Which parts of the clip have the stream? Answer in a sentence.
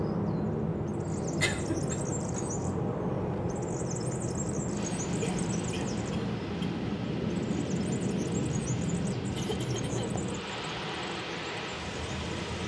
You can hear the stream from 4.8 to 12.6 s.